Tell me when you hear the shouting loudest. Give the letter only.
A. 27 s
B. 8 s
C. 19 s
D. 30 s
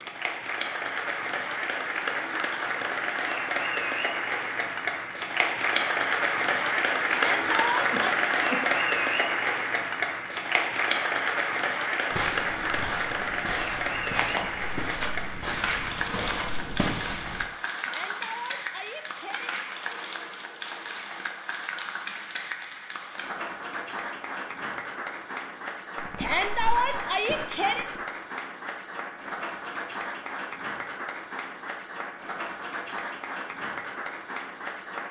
A.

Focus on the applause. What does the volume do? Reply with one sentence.
The volume of the applause goes down.